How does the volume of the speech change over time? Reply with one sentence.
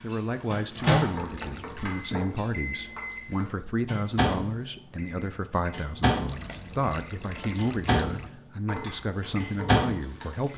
The volume of the speech stays about the same.